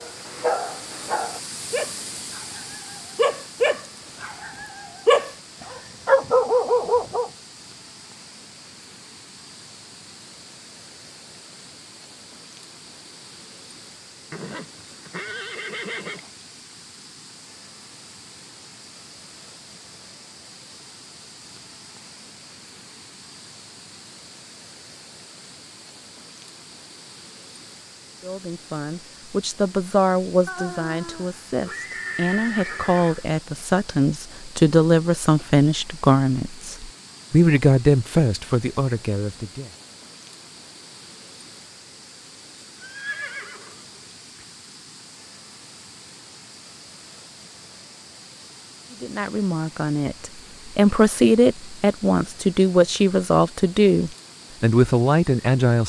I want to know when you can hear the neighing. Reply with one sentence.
The neighing can be heard from 14.3 to 16.3 s, from 30.4 to 33.2 s and from 42.8 to 44.5 s.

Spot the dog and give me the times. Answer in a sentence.
You can hear the dog from 0.0 to 7.3 s.